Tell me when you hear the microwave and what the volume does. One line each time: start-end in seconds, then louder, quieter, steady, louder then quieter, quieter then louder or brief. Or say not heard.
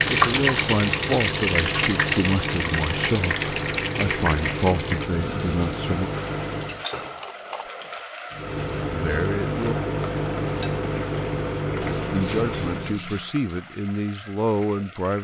0.0-6.8 steady
8.3-13.0 steady.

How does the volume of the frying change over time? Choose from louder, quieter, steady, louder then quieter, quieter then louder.
quieter.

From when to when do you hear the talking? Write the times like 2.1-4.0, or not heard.
0.1-6.1, 8.9-9.8, 12.1-15.1.